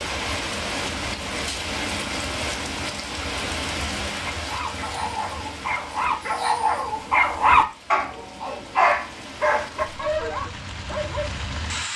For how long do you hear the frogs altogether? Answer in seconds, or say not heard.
not heard.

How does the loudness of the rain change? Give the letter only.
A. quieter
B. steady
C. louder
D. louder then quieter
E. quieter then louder
E.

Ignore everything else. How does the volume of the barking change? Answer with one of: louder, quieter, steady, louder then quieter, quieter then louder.
louder then quieter.